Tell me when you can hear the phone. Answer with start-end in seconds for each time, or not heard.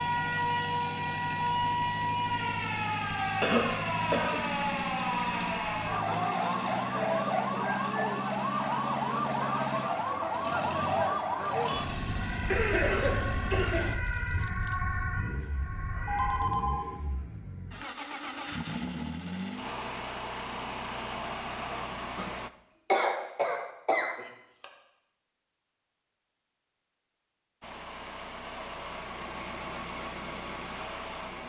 16.1-16.9.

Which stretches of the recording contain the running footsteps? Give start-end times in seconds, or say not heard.
not heard.